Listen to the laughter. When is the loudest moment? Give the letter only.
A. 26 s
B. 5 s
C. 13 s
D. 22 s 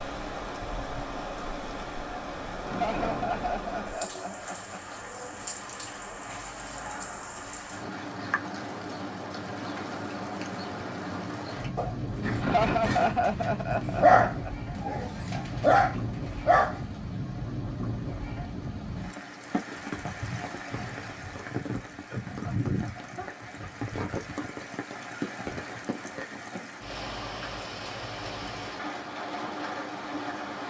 C.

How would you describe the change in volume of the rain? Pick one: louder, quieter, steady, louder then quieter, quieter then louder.
steady.